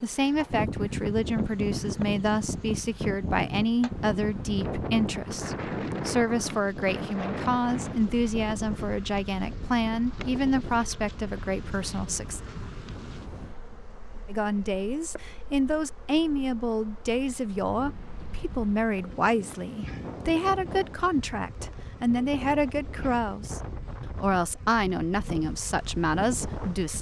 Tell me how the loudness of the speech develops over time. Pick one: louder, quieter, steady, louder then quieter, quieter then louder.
steady.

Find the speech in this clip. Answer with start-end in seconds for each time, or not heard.
0.0-12.4, 14.2-26.9.